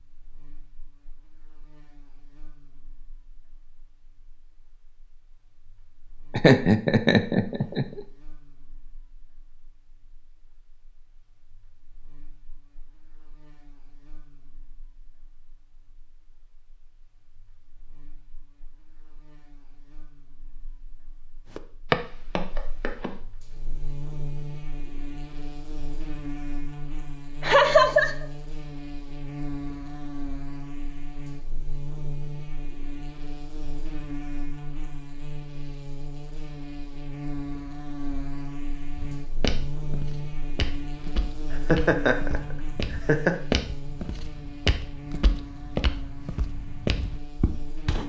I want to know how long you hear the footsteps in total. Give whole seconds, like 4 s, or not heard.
11 s.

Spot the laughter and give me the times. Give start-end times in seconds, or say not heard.
6.3-8.0, 27.4-28.2, 41.5-43.4.